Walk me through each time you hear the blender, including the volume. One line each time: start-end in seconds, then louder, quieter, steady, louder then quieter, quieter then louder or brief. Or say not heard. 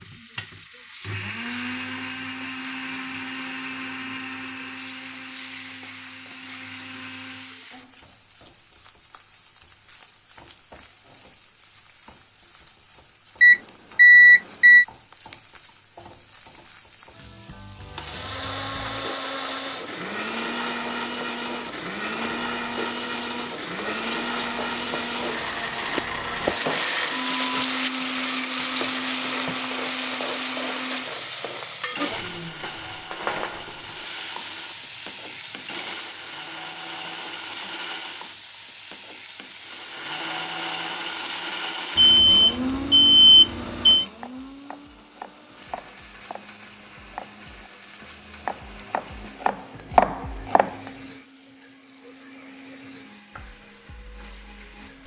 0.0-7.7 quieter
17.9-38.4 quieter
39.6-55.0 quieter.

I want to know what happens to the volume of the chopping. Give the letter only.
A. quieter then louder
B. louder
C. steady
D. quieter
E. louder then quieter
B.